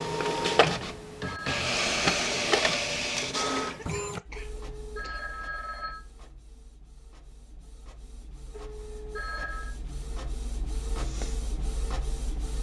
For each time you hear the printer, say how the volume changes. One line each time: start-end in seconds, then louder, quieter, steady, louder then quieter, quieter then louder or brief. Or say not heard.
0.0-12.5 quieter then louder.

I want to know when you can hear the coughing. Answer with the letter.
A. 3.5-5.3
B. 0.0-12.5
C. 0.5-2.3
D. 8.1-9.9
A.